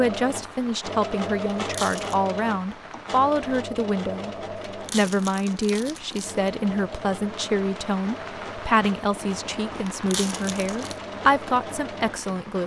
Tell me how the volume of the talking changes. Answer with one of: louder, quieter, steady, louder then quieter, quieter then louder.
steady.